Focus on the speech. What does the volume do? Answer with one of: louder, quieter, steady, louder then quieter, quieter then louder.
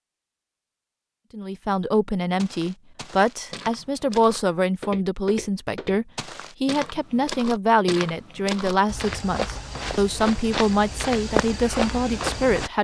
steady.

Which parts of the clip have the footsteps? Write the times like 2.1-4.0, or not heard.
2.4-12.7.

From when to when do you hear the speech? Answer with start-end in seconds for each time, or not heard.
1.3-12.7.